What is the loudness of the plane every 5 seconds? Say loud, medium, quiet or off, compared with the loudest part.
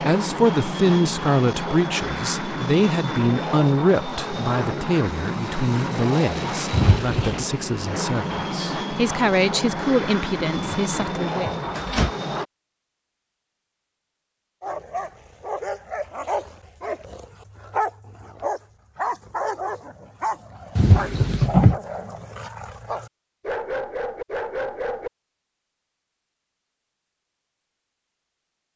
loud, loud, loud, off, off, off.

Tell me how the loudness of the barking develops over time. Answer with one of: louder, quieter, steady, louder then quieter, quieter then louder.
steady.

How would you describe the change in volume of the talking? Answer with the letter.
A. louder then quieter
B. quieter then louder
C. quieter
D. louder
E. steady
B.